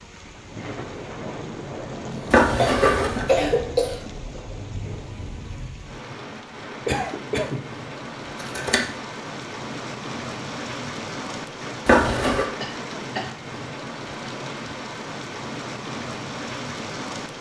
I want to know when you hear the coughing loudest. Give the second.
3 s.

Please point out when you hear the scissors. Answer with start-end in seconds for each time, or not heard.
2.3-3.3, 8.3-8.8, 11.8-12.4.